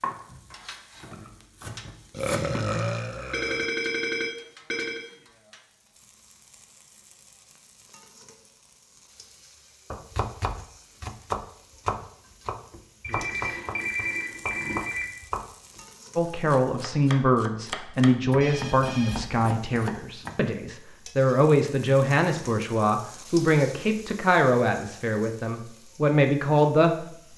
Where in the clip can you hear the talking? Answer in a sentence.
The talking can be heard from 16.1 to 27.1 s.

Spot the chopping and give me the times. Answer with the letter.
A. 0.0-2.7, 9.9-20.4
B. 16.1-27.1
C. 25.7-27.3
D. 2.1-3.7
A.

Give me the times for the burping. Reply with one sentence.
The burping can be heard from 2.1 to 3.7 s.